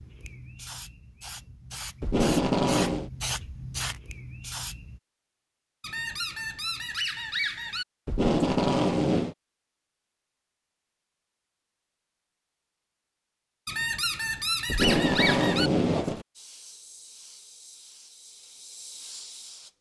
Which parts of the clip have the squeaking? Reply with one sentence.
You can hear the squeaking from 5.8 to 7.8 s and from 13.7 to 15.7 s.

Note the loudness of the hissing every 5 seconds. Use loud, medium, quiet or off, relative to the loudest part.
loud, off, off, medium.